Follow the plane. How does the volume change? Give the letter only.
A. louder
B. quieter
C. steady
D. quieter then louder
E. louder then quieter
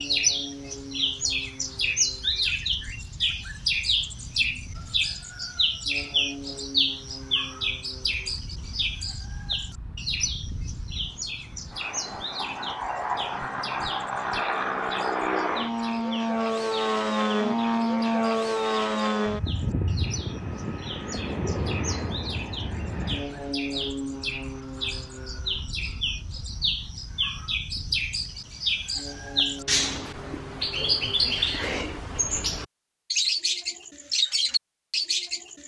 E.